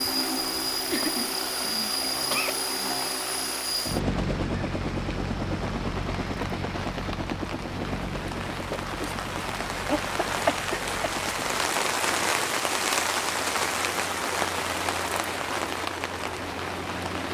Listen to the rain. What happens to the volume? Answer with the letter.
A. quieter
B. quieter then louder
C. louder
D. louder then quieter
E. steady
C.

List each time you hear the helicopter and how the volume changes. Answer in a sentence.
You can hear the helicopter from 0.0 to 17.2 s, getting quieter.